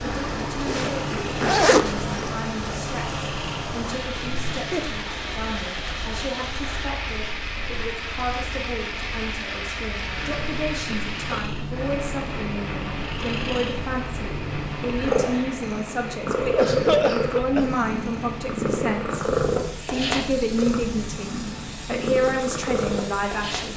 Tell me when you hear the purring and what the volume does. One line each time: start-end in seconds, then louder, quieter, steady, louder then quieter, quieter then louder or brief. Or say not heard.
0.0-23.7 quieter then louder.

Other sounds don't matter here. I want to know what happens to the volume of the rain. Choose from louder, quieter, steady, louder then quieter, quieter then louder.
quieter.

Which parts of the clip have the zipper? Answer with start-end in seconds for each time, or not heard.
0.7-2.4.